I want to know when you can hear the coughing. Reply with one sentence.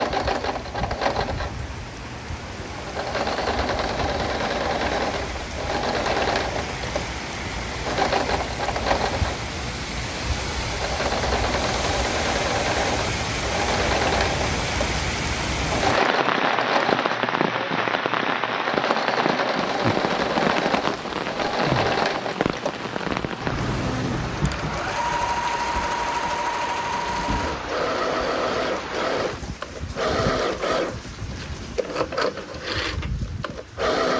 You can't hear the coughing here.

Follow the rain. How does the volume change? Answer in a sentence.
The loudness of the rain goes up, then down.